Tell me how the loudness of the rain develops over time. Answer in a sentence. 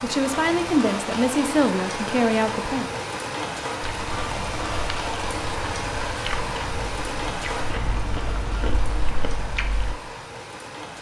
The volume of the rain goes down.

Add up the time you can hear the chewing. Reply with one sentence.
You can hear the chewing for 6 seconds altogether.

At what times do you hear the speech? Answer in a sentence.
You can hear the speech from 0.0 to 2.9 s.